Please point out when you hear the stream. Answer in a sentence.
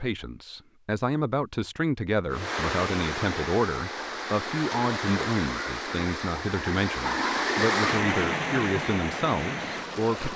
You can hear the stream from 2.3 to 10.3 s.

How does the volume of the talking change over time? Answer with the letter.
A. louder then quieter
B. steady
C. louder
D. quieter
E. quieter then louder
B.